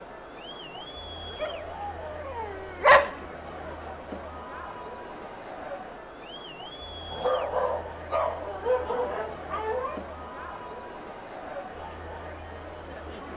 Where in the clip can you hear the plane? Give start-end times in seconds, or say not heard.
not heard.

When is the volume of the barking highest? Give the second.
3 s.